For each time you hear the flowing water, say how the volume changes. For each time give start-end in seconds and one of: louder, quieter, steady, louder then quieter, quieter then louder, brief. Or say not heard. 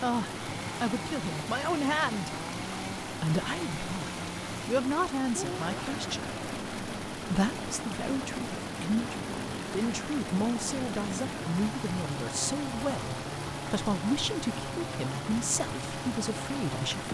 0.0-17.0 steady.